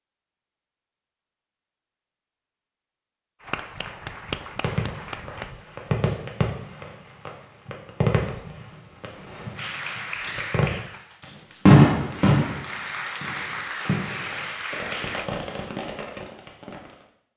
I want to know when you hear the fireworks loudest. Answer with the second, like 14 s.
12 s.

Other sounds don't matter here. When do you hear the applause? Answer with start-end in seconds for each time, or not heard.
3.4-5.5, 9.6-15.3.